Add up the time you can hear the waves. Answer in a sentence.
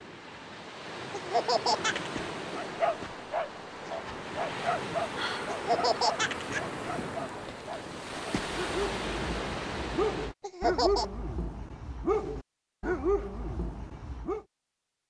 The waves can be heard for 10 seconds in total.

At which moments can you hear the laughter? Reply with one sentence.
You can hear the laughter from 1.1 to 2.2 s, from 5.5 to 6.6 s and from 10.4 to 11.1 s.